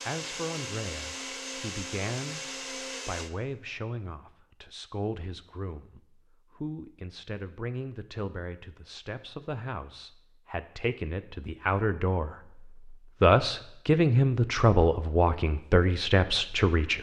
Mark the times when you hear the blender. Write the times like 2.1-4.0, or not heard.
0.0-3.3.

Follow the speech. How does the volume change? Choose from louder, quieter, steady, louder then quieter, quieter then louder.
louder.